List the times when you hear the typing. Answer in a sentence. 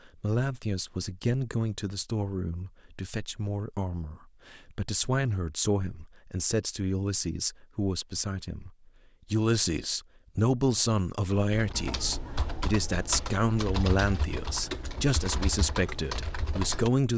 You can hear the typing from 11.5 to 16.9 s.